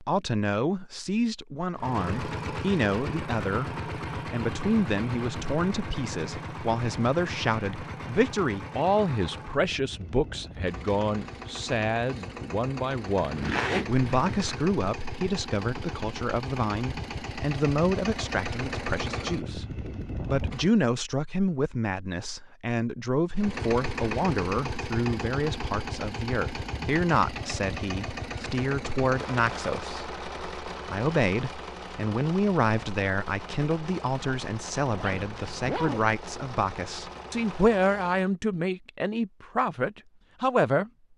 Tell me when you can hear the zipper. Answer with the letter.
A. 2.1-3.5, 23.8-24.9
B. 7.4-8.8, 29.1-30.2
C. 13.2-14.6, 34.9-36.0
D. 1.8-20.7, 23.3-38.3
C.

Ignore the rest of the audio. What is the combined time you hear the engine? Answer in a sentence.
The engine can be heard for 34 seconds in total.